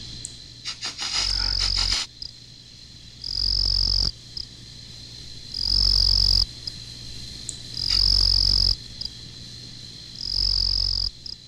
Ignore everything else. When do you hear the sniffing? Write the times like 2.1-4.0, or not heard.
0.2-2.1, 7.5-8.0.